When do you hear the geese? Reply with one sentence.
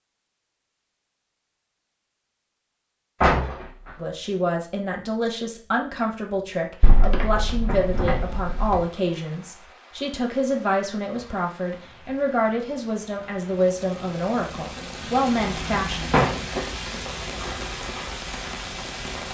You can't hear the geese here.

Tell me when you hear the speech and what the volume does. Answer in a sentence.
The speech can be heard from 4.0 to 16.0 s, at a steady volume.